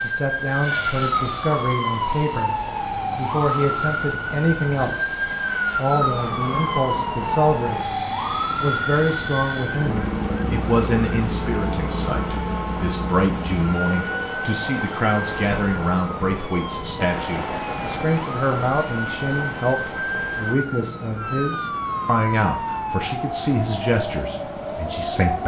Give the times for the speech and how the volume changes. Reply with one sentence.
The speech can be heard briefly from 0.0 to 2.5 s; briefly from 3.1 to 5.2 s; briefly from 5.8 to 7.8 s; and from 8.6 to 25.4 s, at a steady volume.